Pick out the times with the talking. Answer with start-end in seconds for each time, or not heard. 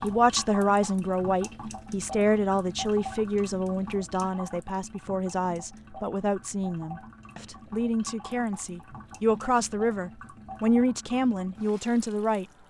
0.0-12.4.